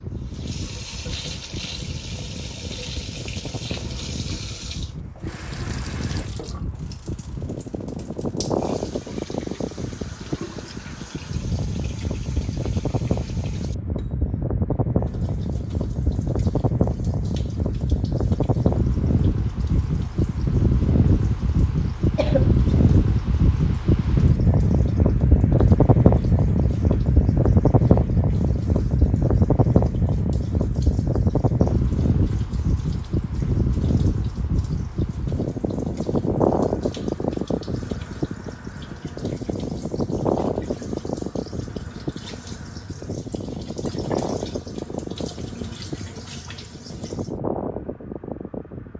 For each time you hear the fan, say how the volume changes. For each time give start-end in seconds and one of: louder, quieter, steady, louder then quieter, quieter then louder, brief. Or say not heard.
0.0-48.9 louder then quieter.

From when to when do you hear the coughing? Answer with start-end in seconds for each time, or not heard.
22.1-22.6.